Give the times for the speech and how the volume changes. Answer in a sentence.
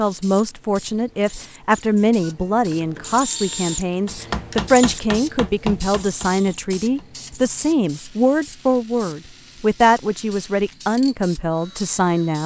You can hear the speech from 0.0 to 12.4 s, at a steady volume.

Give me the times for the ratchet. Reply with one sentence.
You can't hear the ratchet here.